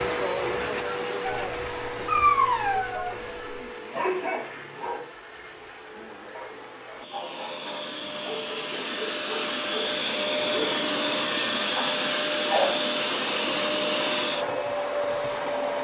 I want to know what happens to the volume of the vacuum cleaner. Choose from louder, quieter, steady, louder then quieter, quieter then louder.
quieter then louder.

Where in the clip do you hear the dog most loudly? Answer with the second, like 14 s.
2 s.